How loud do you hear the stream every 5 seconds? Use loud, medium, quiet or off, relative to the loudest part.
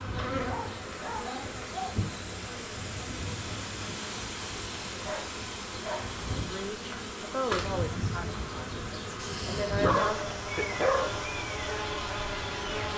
loud, loud, medium.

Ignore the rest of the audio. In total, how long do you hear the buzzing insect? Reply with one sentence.
You can hear the buzzing insect for 13 seconds altogether.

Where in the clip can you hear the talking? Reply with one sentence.
You can hear the talking from 6.3 to 10.4 s.